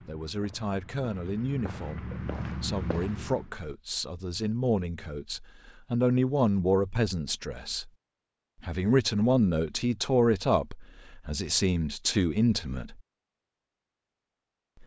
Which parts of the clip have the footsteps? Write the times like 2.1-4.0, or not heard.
0.0-3.5.